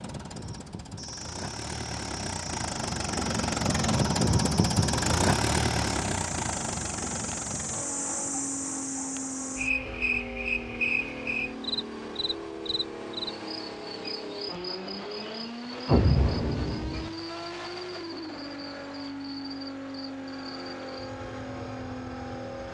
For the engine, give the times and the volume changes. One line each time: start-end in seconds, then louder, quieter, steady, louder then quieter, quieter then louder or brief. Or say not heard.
0.0-22.6 quieter.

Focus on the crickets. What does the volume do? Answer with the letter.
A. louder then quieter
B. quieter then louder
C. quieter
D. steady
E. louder
A.